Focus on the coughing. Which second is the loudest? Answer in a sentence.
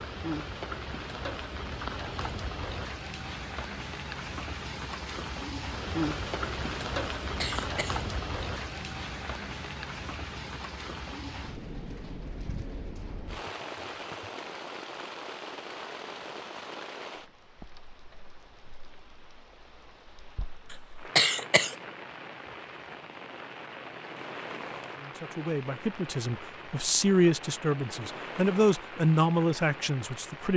The loudest moment of the coughing is at 21 seconds.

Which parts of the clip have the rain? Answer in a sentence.
The rain can be heard from 0.0 to 30.5 s.